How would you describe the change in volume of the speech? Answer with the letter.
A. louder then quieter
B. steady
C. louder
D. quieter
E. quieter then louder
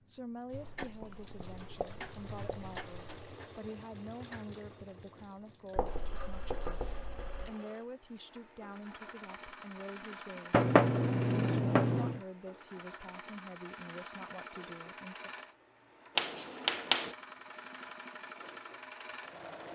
B.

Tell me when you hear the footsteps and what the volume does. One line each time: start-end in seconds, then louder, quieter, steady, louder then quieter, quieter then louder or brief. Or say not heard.
not heard.